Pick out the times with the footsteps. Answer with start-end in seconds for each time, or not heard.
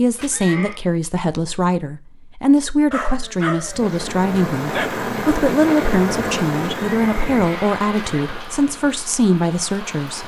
not heard.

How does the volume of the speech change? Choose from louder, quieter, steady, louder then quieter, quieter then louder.
steady.